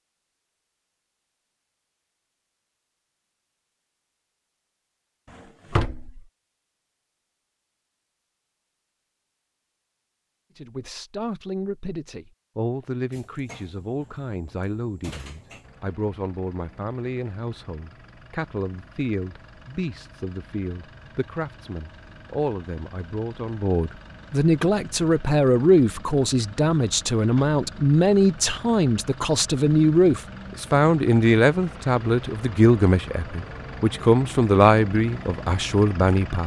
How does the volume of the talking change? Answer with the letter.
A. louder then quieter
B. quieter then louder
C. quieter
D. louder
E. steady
D.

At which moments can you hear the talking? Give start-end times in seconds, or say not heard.
10.6-36.4.